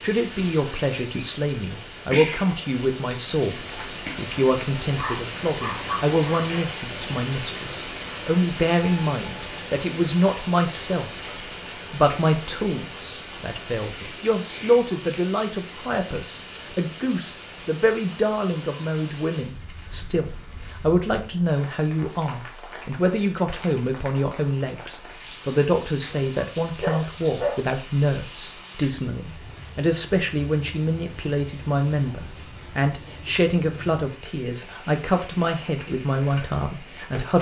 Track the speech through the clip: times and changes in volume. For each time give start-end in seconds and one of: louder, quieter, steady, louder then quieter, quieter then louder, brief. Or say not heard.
0.0-11.1 steady
11.9-37.3 steady.